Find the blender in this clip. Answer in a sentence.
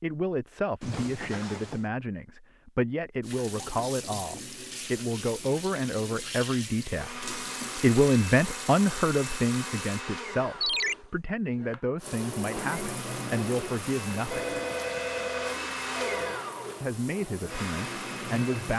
The blender can be heard from 6.9 to 18.7 s.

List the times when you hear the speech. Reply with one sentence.
The speech can be heard from 0.0 to 14.6 s and from 16.8 to 18.7 s.